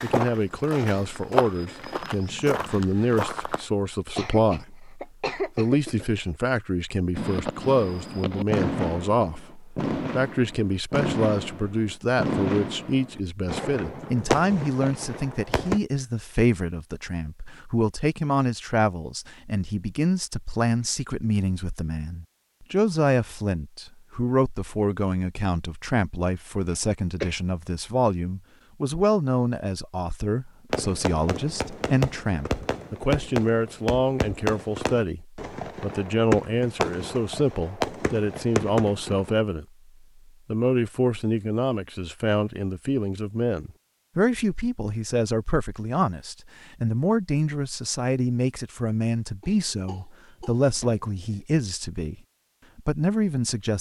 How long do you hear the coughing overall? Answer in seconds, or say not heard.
5 s.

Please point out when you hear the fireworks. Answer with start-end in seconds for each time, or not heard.
7.2-15.8, 30.7-39.4.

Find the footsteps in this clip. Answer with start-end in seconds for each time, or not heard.
0.0-3.6.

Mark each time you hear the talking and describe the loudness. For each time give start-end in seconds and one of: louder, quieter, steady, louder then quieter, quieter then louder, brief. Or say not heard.
0.0-39.6 steady
40.5-52.1 steady
52.8-53.7 brief.